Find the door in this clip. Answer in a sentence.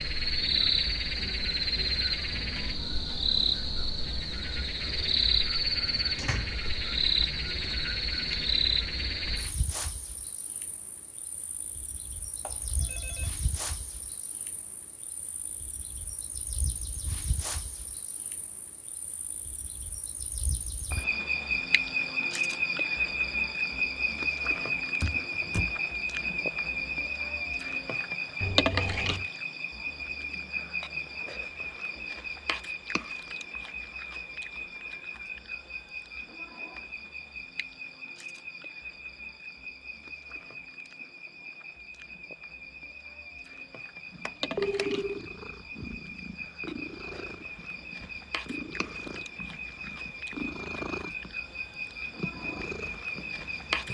The door can be heard from 6.2 to 6.6 s, from 25.0 to 25.8 s and from 44.2 to 44.9 s.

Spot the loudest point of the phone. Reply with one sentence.
The loudest moment of the phone is at 45 seconds.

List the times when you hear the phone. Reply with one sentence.
The phone can be heard from 12.4 to 13.3 s, from 28.4 to 29.3 s and from 44.5 to 45.2 s.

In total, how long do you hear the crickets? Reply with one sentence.
The crickets can be heard for 54 seconds in total.